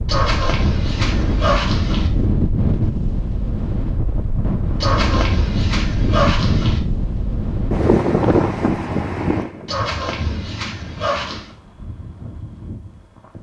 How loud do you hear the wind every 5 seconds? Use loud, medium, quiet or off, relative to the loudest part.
loud, loud, quiet.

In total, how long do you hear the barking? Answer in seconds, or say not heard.
6 s.